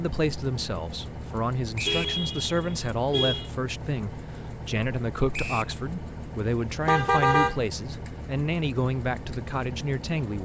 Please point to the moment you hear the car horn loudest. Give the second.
7 s.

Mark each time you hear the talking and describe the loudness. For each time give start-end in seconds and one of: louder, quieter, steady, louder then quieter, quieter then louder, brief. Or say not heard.
0.0-10.3 steady.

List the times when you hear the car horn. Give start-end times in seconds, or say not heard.
1.9-3.5, 6.8-7.6.